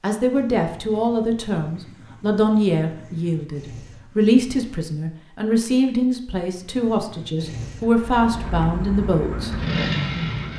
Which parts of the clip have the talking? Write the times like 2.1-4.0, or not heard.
0.0-9.6.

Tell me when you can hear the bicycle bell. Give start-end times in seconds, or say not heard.
not heard.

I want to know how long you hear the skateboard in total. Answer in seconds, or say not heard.
not heard.